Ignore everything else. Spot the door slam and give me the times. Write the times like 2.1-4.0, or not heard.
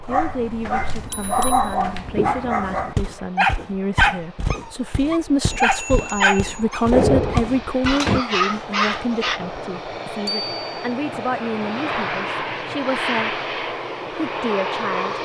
6.9-8.2.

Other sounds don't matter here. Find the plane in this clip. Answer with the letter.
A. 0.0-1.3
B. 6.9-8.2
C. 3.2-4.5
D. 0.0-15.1
D.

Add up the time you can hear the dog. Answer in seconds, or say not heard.
9 s.